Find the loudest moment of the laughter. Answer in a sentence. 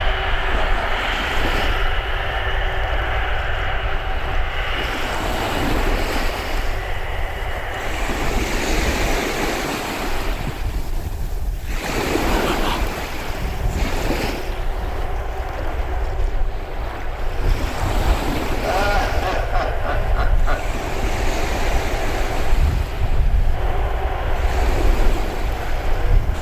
The volume of the laughter peaks at 19 seconds.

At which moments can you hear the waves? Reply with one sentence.
The waves can be heard from 0.0 to 26.3 s.